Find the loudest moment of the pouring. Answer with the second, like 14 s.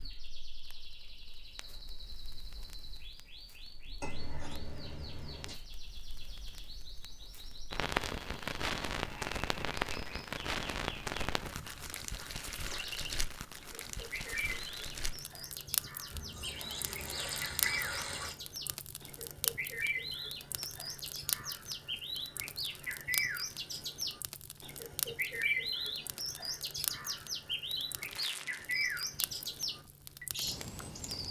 18 s.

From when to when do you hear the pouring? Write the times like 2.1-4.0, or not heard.
4.0-5.5, 16.1-18.4.